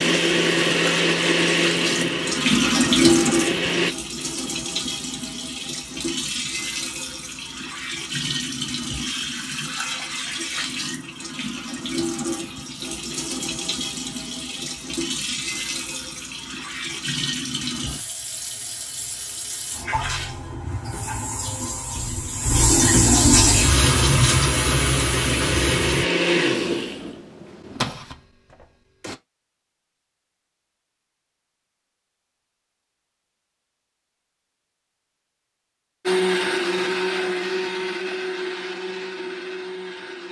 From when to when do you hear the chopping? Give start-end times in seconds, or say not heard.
not heard.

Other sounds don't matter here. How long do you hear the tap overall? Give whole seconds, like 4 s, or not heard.
26 s.